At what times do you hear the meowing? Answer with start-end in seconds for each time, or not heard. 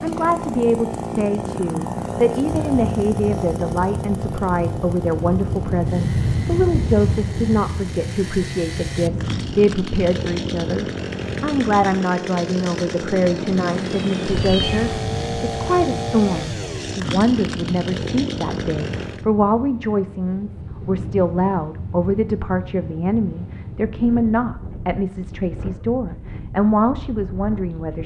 13.7-15.1.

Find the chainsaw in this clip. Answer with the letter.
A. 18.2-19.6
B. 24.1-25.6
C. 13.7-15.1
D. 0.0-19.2
D.